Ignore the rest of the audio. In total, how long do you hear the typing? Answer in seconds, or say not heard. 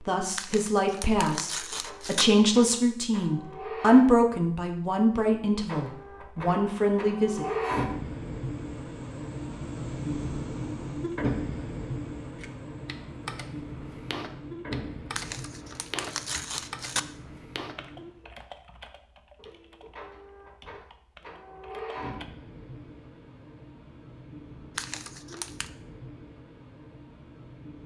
10 s.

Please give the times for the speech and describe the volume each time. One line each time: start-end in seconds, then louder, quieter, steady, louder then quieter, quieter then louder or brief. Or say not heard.
0.0-7.5 louder then quieter.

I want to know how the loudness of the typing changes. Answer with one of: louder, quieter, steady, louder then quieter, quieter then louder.
quieter.